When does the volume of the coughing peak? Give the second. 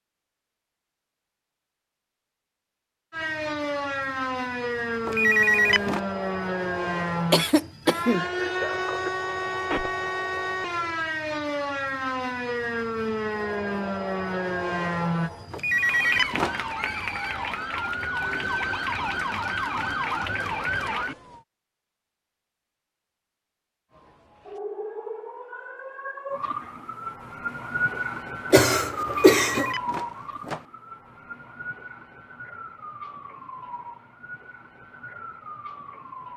29 s.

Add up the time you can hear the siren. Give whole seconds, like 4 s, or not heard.
31 s.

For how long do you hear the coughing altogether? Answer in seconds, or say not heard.
2 s.